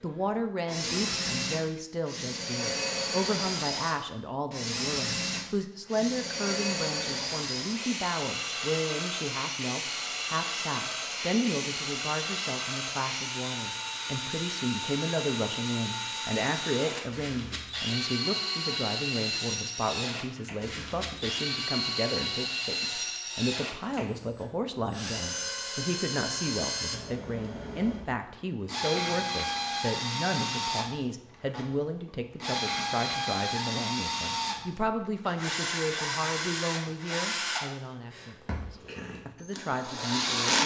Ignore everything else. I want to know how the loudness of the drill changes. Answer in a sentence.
The volume of the drill stays about the same.